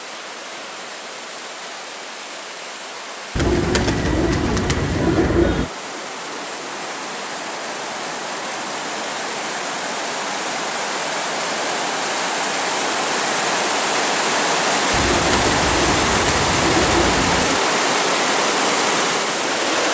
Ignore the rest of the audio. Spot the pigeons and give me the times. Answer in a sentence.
The pigeons can be heard from 3.4 to 5.7 s and from 14.9 to 17.6 s.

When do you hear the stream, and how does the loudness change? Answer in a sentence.
The stream can be heard from 0.0 to 19.9 s, getting louder.